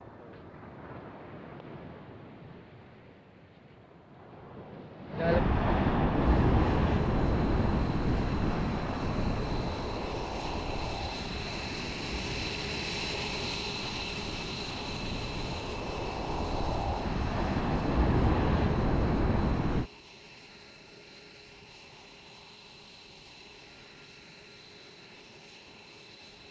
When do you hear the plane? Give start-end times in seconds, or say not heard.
6.0-26.4.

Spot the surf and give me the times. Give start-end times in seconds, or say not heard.
0.0-19.9.